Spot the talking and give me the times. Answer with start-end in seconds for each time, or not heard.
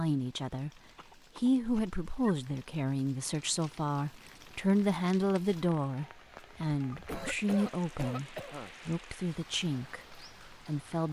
0.0-0.7, 1.4-11.0.